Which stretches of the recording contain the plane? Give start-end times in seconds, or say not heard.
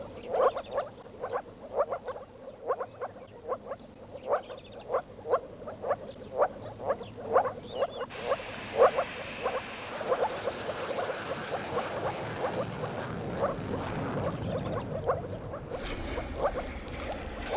8.1-17.5.